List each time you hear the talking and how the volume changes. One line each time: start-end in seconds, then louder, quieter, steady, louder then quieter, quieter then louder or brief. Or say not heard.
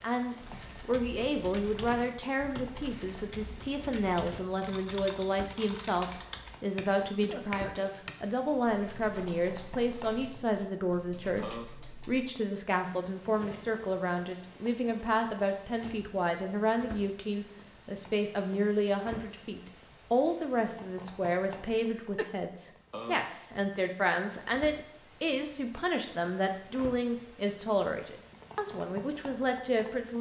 0.0-30.1 steady.